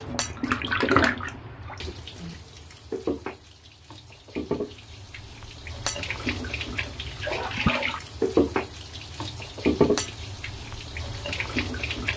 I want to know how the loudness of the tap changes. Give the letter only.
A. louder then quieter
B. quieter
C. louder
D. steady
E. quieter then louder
E.